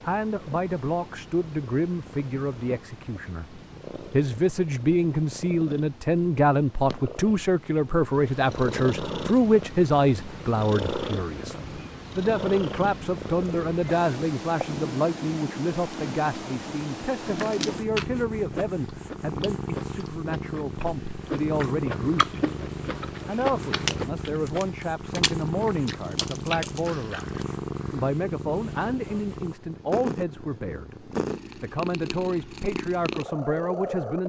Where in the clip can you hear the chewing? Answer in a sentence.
The chewing can be heard from 17.2 to 27.4 s.